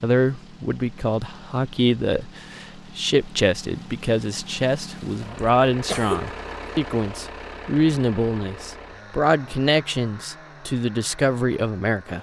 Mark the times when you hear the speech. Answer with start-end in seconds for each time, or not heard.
0.0-12.1.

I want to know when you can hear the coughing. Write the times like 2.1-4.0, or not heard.
5.3-6.7.